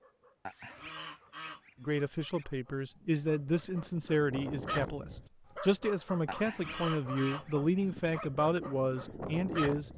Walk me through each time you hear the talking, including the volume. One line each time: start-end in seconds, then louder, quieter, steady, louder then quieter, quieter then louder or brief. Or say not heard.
1.8-9.9 steady.